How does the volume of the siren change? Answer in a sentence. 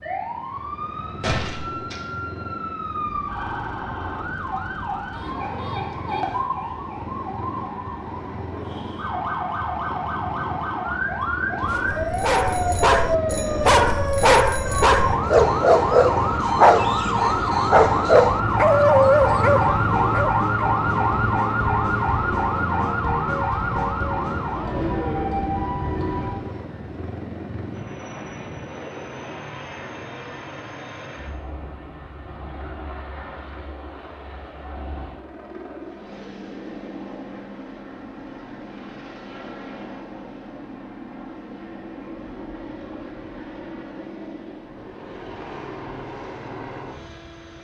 The loudness of the siren goes up.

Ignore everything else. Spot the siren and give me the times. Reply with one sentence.
The siren can be heard from 0.0 to 26.3 s.